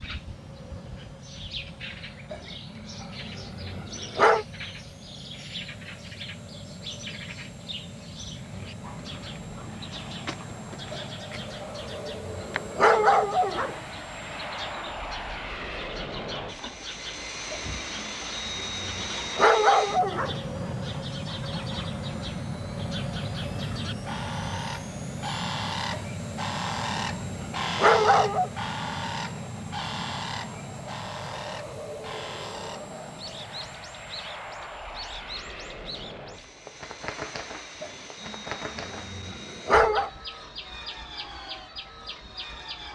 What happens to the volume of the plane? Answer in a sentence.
The loudness of the plane goes up, then down.